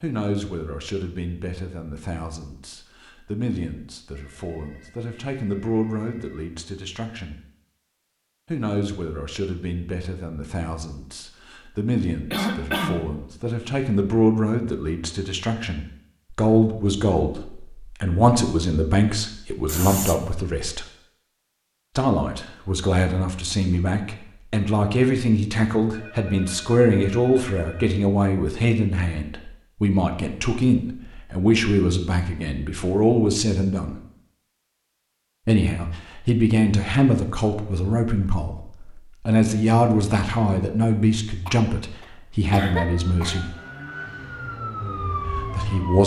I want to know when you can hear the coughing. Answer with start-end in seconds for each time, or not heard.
12.3-13.2, 19.6-20.4, 41.5-43.5.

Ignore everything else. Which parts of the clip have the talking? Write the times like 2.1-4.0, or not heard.
0.0-7.4, 8.4-20.9, 21.9-34.0, 35.5-43.5, 45.4-46.0.